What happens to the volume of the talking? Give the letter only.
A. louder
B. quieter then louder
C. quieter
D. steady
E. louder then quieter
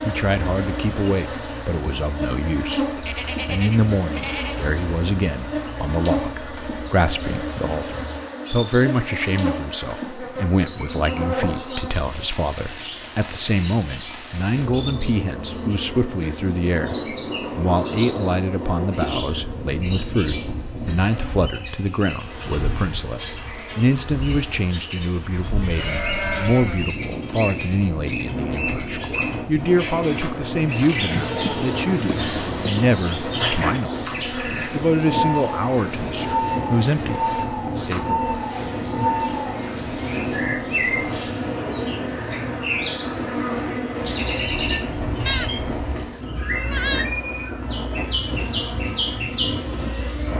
D.